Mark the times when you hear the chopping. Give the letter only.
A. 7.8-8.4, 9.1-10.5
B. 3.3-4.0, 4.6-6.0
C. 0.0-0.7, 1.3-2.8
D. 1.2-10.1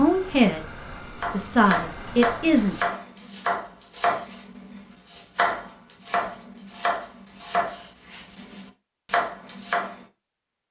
D.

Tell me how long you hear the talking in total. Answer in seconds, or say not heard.
2 s.